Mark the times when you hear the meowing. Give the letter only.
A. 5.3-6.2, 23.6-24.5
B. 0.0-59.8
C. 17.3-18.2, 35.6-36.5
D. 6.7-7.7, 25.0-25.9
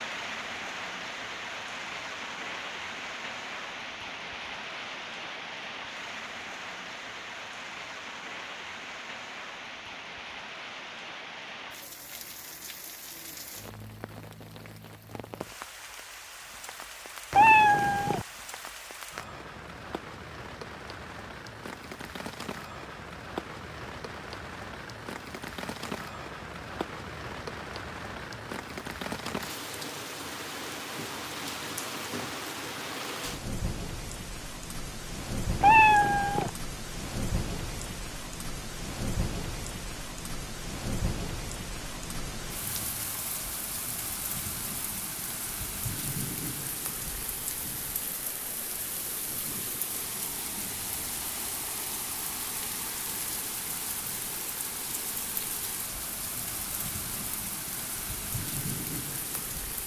C.